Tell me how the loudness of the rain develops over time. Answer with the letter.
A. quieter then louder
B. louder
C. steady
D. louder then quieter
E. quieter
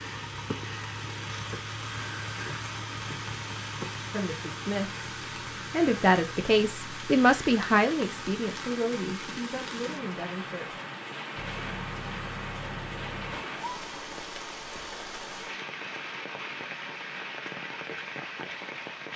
C.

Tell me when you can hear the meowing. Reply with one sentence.
You can't hear the meowing here.